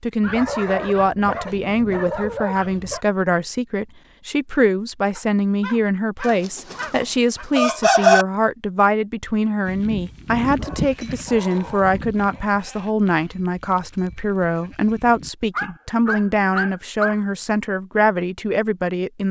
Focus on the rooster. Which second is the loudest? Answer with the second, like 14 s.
8 s.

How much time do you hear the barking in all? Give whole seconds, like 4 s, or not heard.
9 s.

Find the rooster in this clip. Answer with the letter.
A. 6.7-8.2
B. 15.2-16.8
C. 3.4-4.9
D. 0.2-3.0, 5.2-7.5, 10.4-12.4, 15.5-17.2
A.